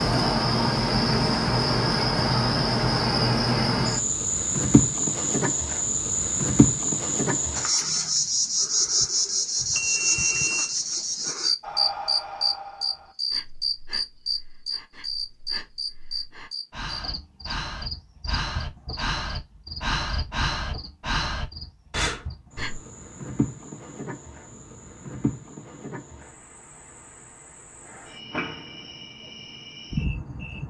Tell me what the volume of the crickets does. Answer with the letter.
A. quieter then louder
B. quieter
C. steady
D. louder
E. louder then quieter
B.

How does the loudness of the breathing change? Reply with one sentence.
The volume of the breathing goes down, then up.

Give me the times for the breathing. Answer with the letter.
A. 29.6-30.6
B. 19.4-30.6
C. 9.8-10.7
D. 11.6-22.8
D.